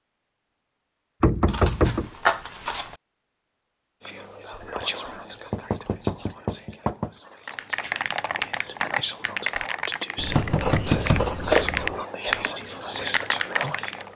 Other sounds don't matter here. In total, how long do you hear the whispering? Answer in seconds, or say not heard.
10 s.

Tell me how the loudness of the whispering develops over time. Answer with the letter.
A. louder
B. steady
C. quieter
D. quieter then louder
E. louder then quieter
D.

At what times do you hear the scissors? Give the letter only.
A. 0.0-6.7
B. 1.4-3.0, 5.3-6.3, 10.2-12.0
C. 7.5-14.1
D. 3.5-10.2
B.